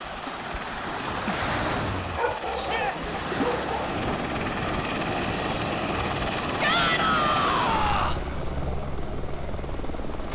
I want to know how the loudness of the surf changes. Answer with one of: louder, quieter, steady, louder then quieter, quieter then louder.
quieter.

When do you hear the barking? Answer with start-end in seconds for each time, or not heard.
2.1-4.0.